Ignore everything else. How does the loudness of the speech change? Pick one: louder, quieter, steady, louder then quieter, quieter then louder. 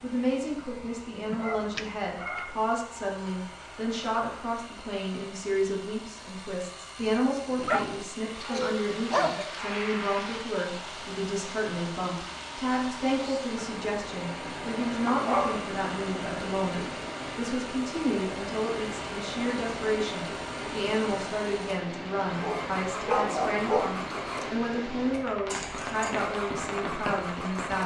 steady.